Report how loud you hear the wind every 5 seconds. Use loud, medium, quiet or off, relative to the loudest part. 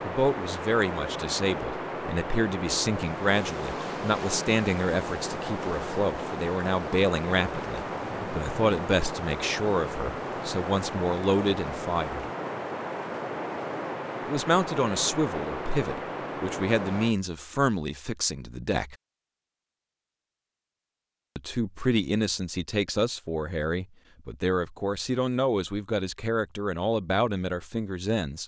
loud, loud, loud, loud, off, off.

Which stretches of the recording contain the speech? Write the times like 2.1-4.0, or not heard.
0.0-12.2, 14.2-18.9, 21.4-28.4.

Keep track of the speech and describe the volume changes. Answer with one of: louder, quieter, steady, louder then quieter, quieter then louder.
steady.